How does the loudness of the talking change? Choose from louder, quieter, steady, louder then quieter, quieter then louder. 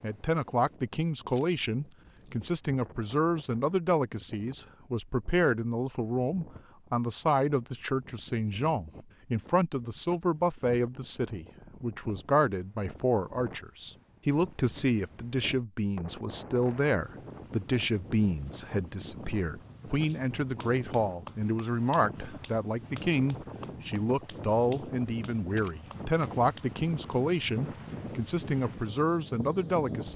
steady.